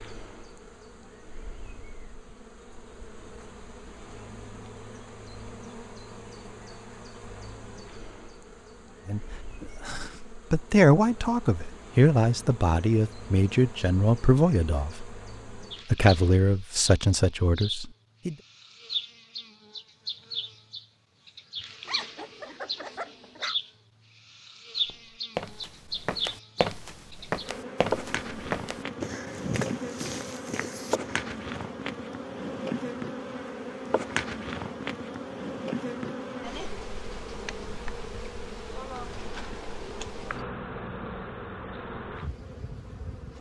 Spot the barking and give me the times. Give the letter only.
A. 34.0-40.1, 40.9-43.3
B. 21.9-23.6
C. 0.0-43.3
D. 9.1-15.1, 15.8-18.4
B.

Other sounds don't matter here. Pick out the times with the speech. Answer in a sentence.
You can hear the speech from 9.1 to 15.1 s and from 15.8 to 18.4 s.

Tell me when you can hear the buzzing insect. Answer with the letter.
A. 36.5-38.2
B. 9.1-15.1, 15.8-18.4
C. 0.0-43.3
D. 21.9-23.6
C.